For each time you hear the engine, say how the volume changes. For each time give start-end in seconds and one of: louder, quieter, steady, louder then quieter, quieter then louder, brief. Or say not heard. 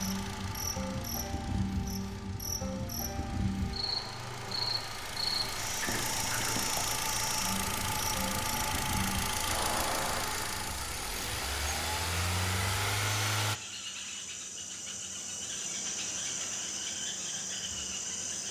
0.0-13.6 louder.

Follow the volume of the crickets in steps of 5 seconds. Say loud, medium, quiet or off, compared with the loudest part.
loud, loud, medium, loud.